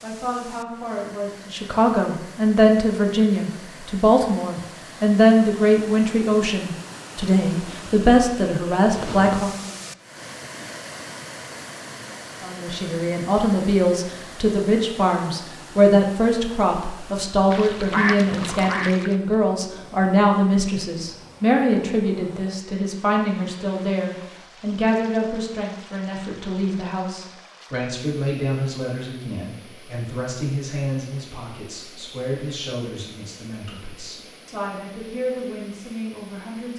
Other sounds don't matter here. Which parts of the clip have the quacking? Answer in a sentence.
The quacking can be heard from 17.5 to 19.1 s.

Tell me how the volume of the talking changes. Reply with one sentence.
The volume of the talking goes down.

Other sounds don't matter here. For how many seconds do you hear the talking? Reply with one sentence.
The talking can be heard for 34 seconds in total.